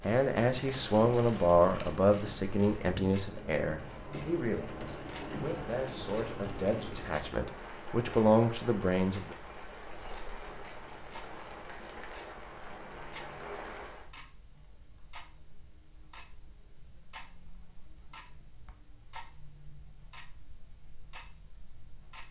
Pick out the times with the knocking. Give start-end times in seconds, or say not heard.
not heard.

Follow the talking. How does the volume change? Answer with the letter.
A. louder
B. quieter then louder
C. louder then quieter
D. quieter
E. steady
B.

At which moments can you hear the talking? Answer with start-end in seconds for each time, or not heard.
0.0-9.3.